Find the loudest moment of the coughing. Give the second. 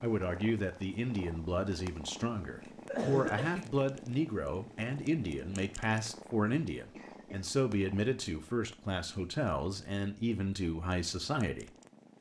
3 s.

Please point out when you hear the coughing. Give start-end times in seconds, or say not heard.
2.6-3.7, 6.9-7.5.